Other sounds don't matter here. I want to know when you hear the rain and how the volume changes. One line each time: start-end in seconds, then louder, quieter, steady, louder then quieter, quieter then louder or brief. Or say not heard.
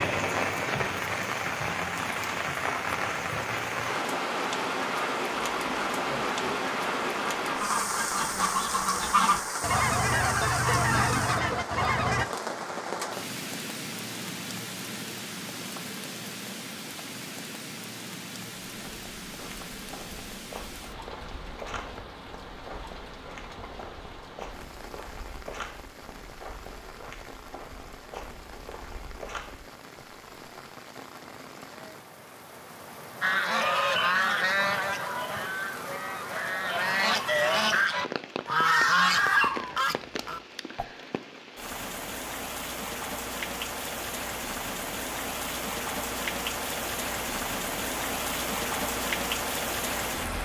0.0-50.3 quieter then louder.